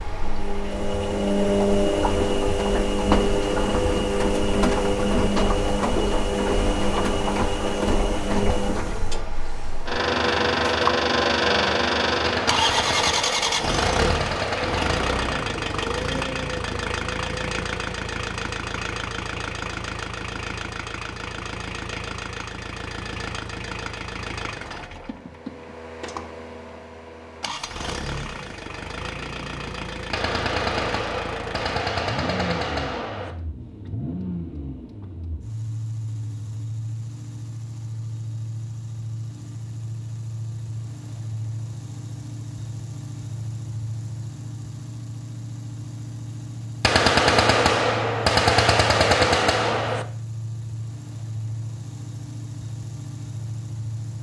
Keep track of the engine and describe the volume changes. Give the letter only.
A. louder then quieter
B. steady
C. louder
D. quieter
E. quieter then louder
D.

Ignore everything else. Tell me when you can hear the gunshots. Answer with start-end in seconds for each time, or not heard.
12.2-15.4, 30.1-33.4, 46.8-50.0.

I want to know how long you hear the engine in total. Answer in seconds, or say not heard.
54 s.